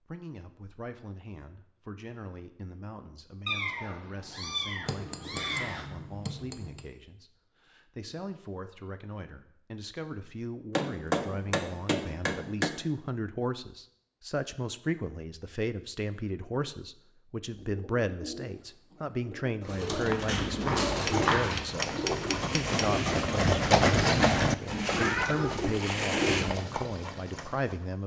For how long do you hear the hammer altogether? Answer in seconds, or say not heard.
6 s.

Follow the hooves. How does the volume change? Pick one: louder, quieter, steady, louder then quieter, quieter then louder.
louder then quieter.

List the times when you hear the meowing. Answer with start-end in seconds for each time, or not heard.
3.5-5.8, 24.9-25.6.